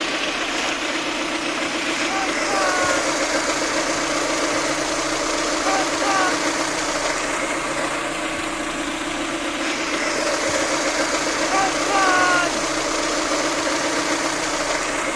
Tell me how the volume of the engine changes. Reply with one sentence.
The volume of the engine stays about the same.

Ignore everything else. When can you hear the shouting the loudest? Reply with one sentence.
The loudest moment of the shouting is at 12 seconds.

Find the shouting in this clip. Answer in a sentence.
You can hear the shouting from 2.0 to 3.1 s, from 5.6 to 6.3 s and from 11.5 to 12.7 s.